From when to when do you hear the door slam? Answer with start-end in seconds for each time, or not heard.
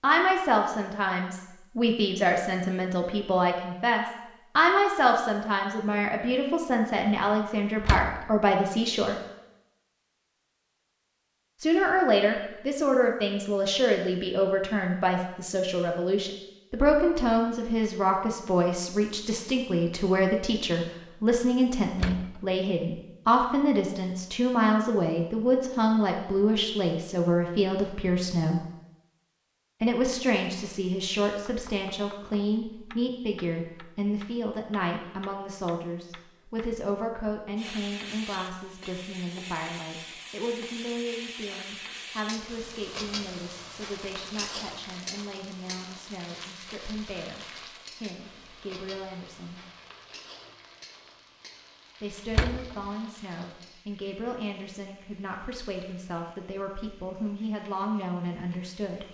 7.8-8.2, 21.9-22.4, 52.3-52.8.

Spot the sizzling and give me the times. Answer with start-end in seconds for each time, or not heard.
37.5-59.0.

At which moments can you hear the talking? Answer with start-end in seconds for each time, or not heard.
0.0-9.2, 11.6-28.6, 29.8-49.6, 52.0-59.0.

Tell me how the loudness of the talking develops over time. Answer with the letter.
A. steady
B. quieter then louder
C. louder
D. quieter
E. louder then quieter
D.